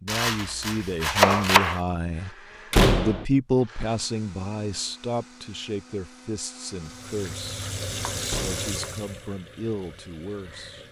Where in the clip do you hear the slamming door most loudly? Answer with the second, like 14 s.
3 s.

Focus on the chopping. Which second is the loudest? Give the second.
1 s.